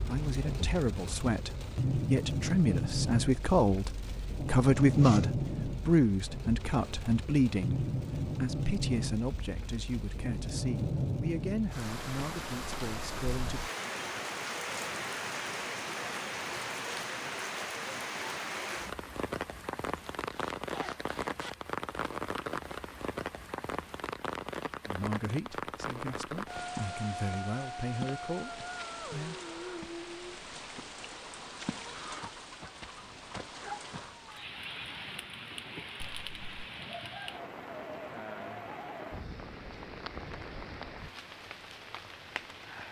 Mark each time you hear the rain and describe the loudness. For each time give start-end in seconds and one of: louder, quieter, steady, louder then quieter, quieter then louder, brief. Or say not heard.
0.0-42.8 quieter.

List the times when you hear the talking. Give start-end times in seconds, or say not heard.
0.0-13.6, 24.9-29.4.